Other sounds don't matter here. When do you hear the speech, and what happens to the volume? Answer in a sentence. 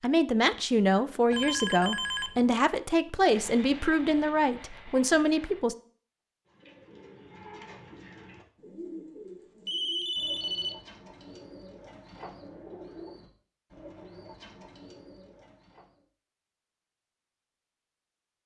You can hear the speech from 0.0 to 5.8 s, at a steady volume.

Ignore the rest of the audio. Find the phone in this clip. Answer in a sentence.
You can hear the phone from 1.3 to 2.5 s and from 9.7 to 10.8 s.